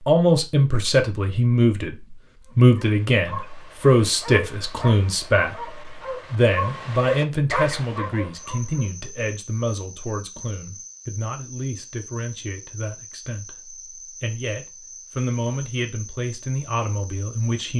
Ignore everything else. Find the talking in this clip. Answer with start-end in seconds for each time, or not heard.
0.1-17.7.